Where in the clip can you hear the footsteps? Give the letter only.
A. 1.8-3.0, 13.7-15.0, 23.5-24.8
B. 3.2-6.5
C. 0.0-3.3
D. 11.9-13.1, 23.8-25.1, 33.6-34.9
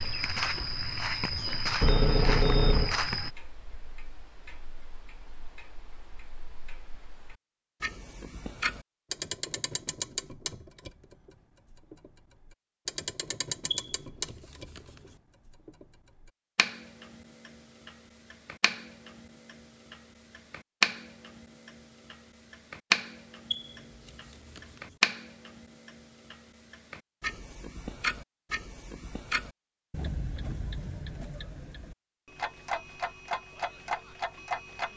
C.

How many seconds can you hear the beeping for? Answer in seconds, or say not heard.
4 s.